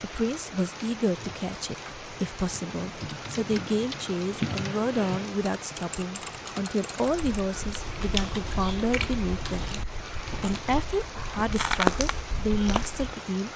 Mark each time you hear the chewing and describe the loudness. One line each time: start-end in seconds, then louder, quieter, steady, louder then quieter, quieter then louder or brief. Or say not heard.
7.2-13.2 quieter then louder.